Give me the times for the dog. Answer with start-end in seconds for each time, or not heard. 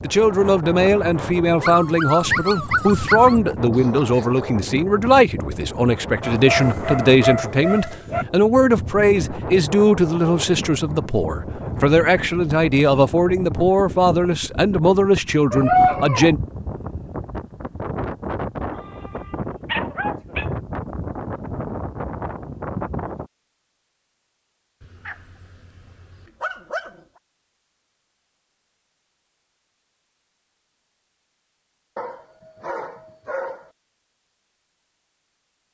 1.6-3.4, 6.2-8.2, 15.5-16.4, 18.8-20.4, 24.8-27.0, 31.9-33.7.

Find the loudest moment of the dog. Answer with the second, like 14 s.
16 s.